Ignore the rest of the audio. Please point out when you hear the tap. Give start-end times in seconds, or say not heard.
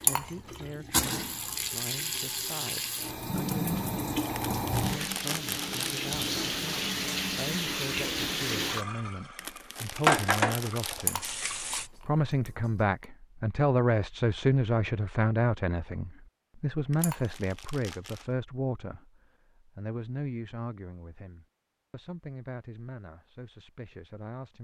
0.0-11.9.